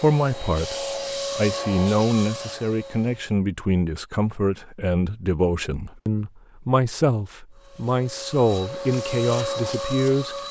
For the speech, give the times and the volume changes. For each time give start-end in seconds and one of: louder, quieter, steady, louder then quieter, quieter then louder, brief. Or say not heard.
0.0-10.3 steady.